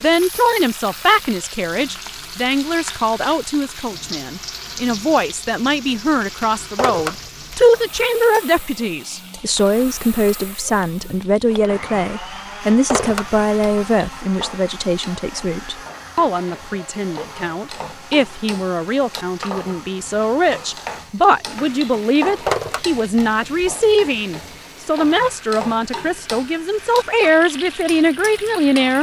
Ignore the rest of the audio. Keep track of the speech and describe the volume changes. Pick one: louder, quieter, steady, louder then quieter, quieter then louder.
steady.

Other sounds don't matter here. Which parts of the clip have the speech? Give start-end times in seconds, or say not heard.
0.0-28.9.